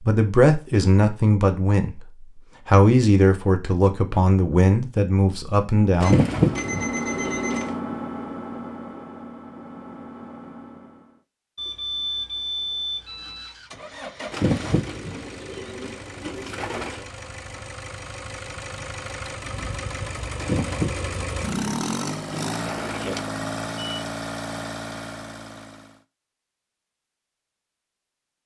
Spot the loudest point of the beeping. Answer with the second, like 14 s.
12 s.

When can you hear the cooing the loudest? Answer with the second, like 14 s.
6 s.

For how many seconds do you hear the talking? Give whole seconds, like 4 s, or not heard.
6 s.